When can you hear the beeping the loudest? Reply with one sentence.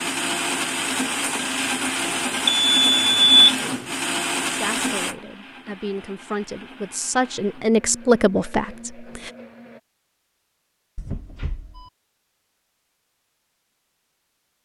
The loudest moment of the beeping is at 3 seconds.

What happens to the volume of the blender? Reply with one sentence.
The volume of the blender goes down.